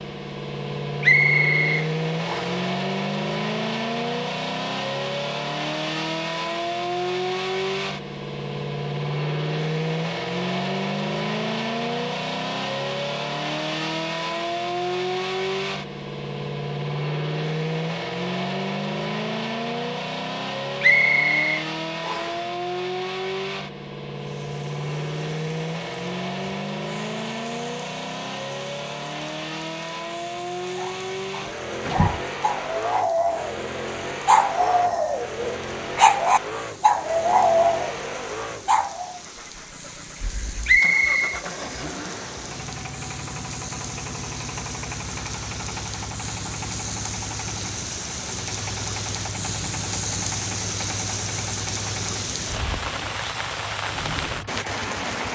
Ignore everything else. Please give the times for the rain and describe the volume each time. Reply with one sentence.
The rain can be heard from 24.1 to 55.3 s, getting louder.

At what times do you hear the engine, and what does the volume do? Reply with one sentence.
You can hear the engine from 0.0 to 55.3 s, getting quieter.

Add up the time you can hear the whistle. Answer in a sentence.
The whistle can be heard for 4 seconds in total.